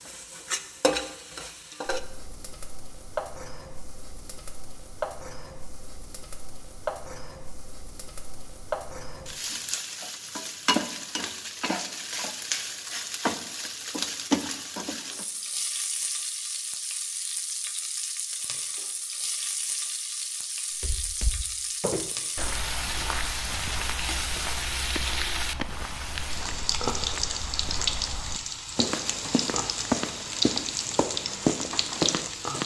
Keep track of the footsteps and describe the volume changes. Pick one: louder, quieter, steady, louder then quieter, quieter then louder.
louder.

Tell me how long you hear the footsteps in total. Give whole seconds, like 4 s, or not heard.
12 s.